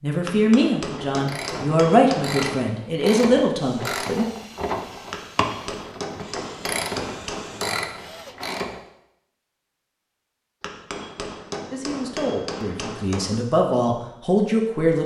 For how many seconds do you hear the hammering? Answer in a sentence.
The hammering can be heard for 8 seconds in total.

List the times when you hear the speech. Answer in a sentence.
You can hear the speech from 0.0 to 4.2 s and from 11.7 to 15.0 s.